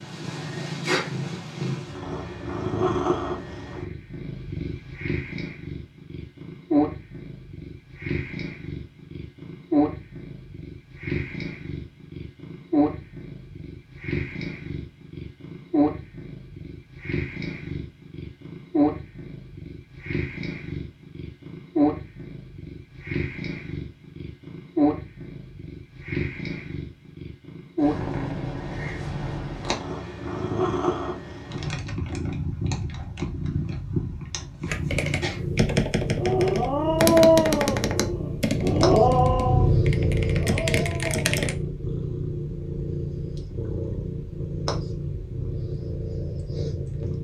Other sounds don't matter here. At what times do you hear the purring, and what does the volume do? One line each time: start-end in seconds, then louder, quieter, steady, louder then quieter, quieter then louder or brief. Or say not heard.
0.0-47.1 steady.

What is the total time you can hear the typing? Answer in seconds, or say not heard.
7 s.